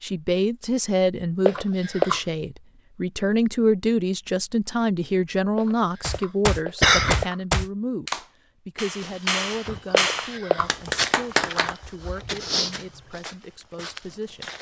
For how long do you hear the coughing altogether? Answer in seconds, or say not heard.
3 s.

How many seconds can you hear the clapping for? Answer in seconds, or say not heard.
6 s.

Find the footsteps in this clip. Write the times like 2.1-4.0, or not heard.
8.9-14.5.